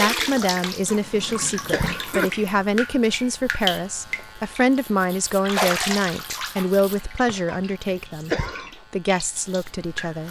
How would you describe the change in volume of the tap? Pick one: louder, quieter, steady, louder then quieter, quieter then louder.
louder then quieter.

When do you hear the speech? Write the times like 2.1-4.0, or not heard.
0.0-10.2.